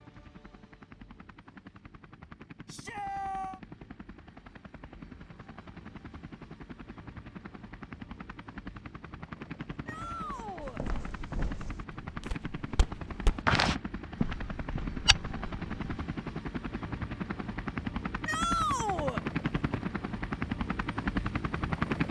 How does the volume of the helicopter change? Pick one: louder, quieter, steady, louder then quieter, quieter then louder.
louder.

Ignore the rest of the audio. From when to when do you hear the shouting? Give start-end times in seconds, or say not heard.
2.6-3.6, 9.8-10.8, 18.2-19.2.